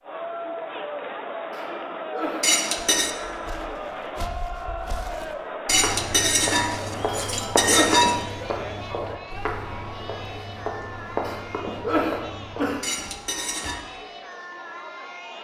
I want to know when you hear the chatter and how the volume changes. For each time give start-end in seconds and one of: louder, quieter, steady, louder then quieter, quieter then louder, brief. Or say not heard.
0.0-15.3 quieter.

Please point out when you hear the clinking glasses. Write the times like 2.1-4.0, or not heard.
2.4-3.1, 5.7-8.2, 12.8-13.8.